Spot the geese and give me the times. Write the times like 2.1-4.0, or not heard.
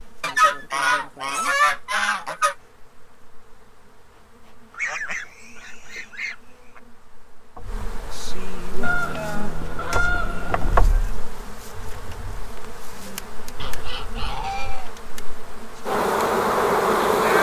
0.2-2.5, 4.7-6.8, 8.8-10.8, 13.6-15.1.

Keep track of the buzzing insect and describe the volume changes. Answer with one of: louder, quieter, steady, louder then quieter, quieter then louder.
louder.